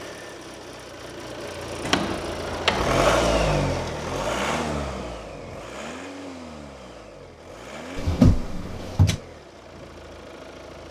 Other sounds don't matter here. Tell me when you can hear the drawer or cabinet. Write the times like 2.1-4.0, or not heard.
1.8-3.0, 8.0-9.2.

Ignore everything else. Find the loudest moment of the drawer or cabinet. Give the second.
8 s.